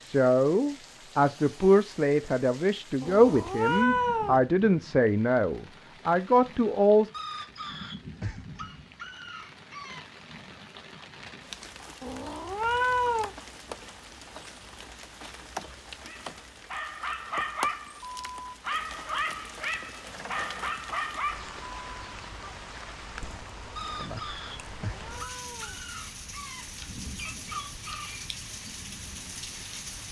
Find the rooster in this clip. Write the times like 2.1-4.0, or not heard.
7.1-10.1, 23.8-28.3.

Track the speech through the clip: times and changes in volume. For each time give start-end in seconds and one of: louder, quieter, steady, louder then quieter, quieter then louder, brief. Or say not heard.
0.0-7.1 steady.